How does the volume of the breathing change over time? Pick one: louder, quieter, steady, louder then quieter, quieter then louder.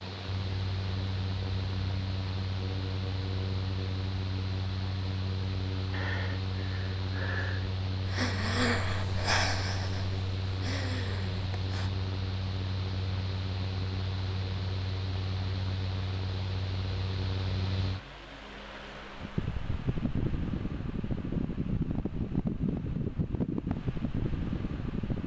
louder then quieter.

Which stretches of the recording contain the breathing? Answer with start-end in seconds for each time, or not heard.
5.9-11.9.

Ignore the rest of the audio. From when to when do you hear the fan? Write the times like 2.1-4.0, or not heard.
0.0-25.2.